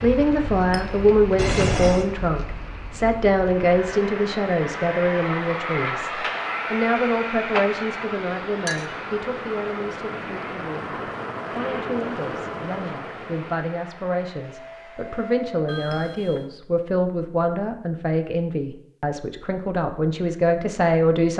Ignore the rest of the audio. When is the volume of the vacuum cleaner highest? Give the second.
6 s.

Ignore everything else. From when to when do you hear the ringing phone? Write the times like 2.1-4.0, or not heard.
1.4-2.1, 15.7-16.5.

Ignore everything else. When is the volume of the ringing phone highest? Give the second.
2 s.